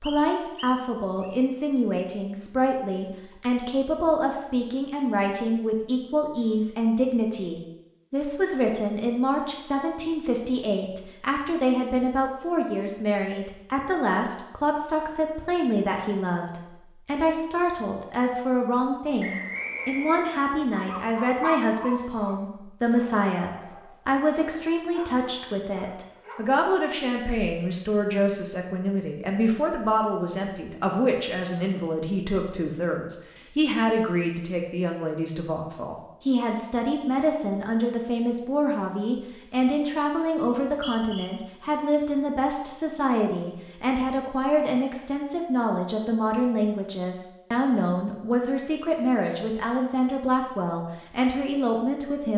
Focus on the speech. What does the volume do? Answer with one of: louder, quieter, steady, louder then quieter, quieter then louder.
steady.